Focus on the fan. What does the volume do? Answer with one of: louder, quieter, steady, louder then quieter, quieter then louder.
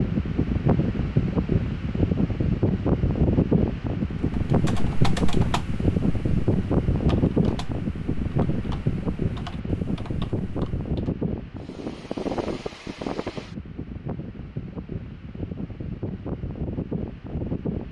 quieter.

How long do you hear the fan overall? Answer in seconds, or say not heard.
18 s.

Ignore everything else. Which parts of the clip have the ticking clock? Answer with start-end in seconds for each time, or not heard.
not heard.